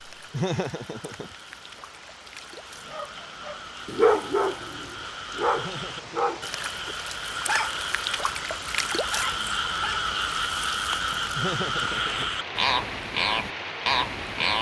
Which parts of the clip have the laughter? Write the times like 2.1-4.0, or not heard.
0.3-1.4, 5.5-6.5, 11.3-12.3.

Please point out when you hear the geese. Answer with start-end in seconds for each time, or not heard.
not heard.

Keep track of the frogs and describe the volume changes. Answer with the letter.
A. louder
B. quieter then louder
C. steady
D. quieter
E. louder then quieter
A.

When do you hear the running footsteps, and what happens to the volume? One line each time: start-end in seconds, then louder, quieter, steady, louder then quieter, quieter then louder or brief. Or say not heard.
not heard.